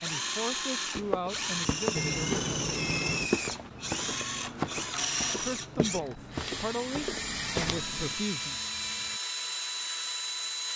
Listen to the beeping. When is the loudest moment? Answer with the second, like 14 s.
2 s.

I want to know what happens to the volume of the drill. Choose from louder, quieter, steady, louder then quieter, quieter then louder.
steady.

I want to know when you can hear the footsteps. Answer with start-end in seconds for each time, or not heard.
0.9-8.2.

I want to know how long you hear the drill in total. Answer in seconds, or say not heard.
11 s.